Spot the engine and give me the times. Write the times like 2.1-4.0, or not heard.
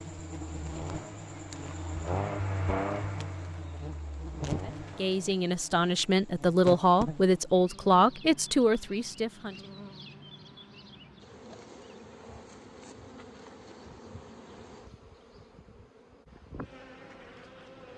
0.0-5.5.